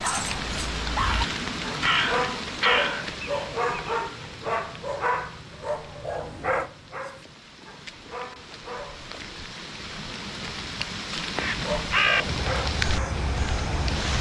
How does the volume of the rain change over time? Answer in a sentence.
The volume of the rain goes down, then up.